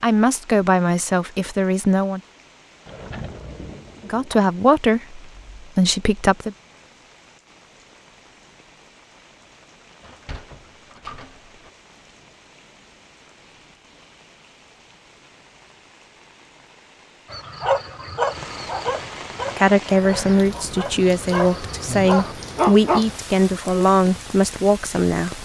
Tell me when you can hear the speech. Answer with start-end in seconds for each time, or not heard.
0.0-2.2, 4.0-6.5, 19.6-25.4.